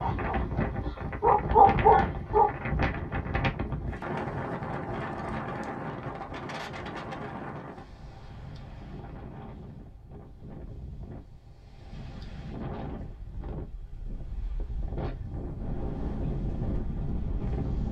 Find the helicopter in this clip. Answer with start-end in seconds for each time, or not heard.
not heard.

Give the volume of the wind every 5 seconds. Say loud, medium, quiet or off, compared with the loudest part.
loud, medium, medium, loud.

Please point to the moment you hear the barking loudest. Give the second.
2 s.